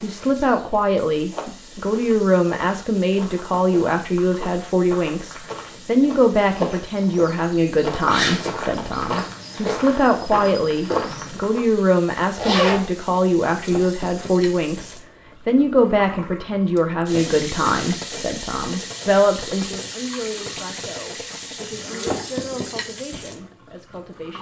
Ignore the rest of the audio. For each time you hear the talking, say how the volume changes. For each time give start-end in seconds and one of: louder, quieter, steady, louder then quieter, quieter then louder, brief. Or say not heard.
0.0-24.3 quieter.